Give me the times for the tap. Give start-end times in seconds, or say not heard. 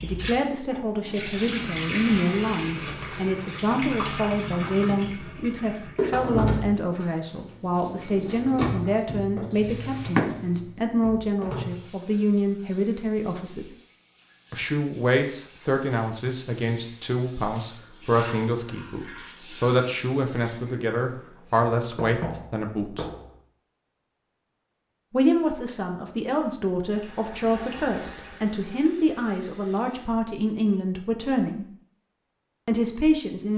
0.0-21.6, 26.9-30.1.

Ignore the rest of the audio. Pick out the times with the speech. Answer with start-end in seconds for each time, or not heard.
0.0-13.7, 14.5-23.1, 25.1-31.6, 32.6-33.5.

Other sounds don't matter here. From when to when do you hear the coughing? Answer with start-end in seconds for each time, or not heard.
not heard.